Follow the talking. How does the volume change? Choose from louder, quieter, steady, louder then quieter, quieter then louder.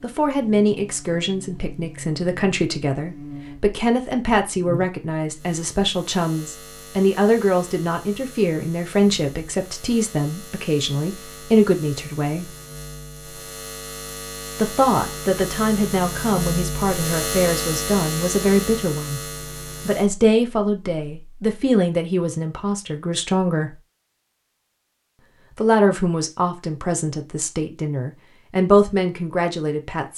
steady.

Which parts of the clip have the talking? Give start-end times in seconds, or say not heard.
0.0-12.6, 14.6-19.2, 19.9-23.8, 25.6-30.1.